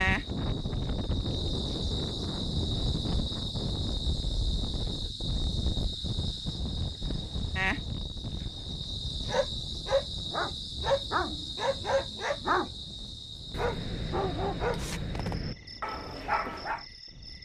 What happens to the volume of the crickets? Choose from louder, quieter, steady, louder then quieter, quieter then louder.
quieter.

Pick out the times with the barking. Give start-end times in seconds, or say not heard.
9.2-16.9.